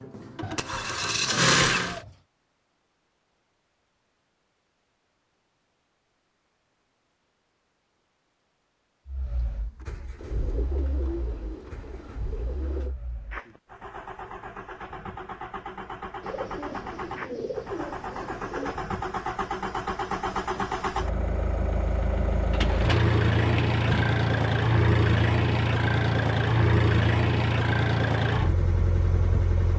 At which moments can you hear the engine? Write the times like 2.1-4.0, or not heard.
0.0-2.0, 9.1-29.7.